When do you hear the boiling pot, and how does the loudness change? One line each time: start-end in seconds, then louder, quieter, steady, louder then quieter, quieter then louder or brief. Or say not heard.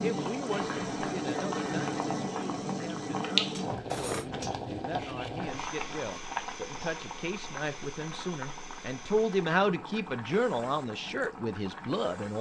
0.0-12.3 quieter.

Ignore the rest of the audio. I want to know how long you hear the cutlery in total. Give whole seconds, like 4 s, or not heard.
2 s.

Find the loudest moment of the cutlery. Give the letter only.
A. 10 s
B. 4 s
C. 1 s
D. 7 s
B.